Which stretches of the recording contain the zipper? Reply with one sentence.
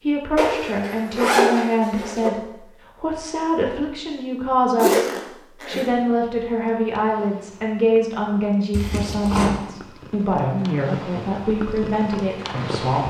You can hear the zipper from 0.3 to 2.3 s, from 4.8 to 5.9 s and from 8.7 to 9.5 s.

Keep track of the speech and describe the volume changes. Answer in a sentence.
The loudness of the speech stays about the same.